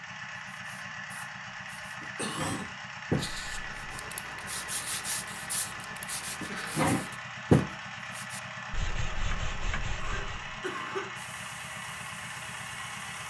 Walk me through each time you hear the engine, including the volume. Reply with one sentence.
You can hear the engine from 0.0 to 13.2 s, at a steady volume.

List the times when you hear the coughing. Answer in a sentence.
You can hear the coughing from 1.8 to 2.7 s, from 6.3 to 6.8 s and from 10.0 to 11.1 s.